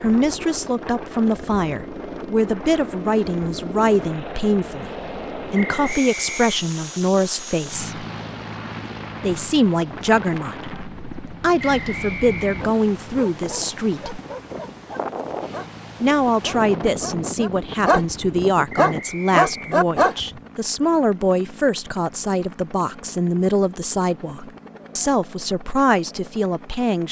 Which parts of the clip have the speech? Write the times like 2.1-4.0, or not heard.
0.0-8.1, 9.2-14.2, 16.0-27.0.